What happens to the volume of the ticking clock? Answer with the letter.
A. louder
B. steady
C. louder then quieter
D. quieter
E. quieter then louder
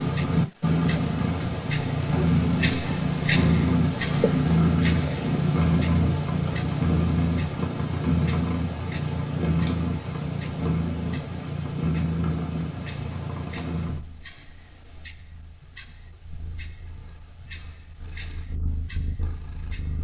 D.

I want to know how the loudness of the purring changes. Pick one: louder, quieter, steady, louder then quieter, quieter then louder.
quieter.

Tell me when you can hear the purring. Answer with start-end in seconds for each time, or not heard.
0.0-20.0.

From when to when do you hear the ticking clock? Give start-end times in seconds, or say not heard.
0.0-20.0.